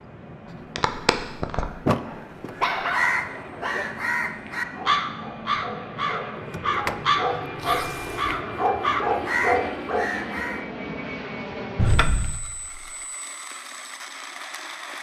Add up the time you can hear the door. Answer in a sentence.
You can hear the door for 3 seconds altogether.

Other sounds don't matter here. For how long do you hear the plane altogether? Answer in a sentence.
The plane can be heard for 15 seconds in total.